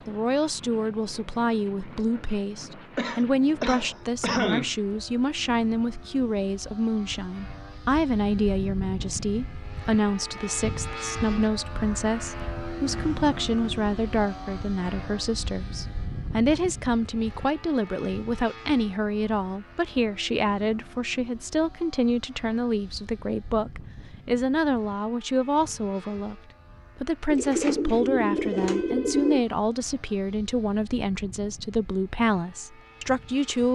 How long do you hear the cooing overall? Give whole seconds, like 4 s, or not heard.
2 s.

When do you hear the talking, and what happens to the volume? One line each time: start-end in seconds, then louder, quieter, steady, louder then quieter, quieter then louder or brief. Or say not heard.
0.1-26.4 steady
26.9-33.7 steady.